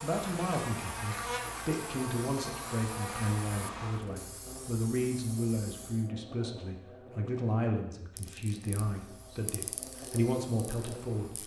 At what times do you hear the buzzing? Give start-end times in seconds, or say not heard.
0.0-11.4.